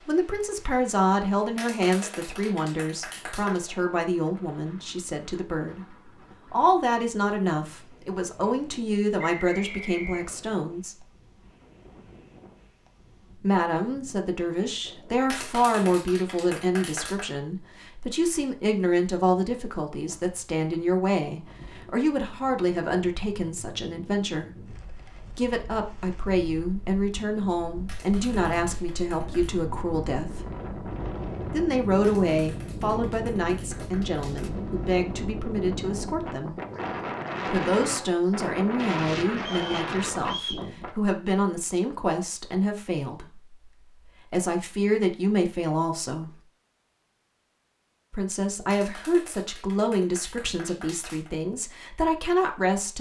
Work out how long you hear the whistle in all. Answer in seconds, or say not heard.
2 s.